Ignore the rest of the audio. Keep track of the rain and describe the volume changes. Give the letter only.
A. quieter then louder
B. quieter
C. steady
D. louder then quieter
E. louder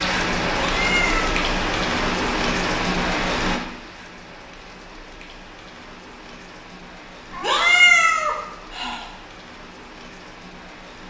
B.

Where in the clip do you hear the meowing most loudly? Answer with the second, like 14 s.
8 s.